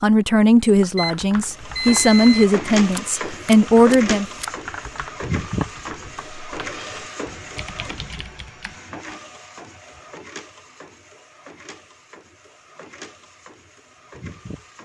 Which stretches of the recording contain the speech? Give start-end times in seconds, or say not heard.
0.0-4.2.